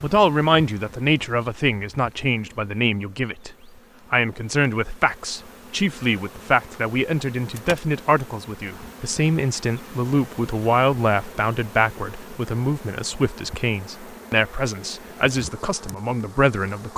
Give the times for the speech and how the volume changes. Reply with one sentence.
The speech can be heard from 0.0 to 16.9 s, at a steady volume.